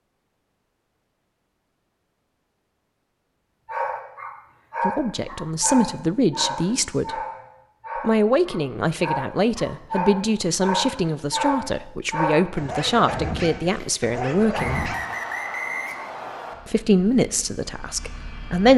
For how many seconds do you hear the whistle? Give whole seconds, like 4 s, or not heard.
2 s.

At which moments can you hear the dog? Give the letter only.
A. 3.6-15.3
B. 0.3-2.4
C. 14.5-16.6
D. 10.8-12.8
A.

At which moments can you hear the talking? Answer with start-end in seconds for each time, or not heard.
4.8-7.2, 8.0-14.9, 16.6-18.7.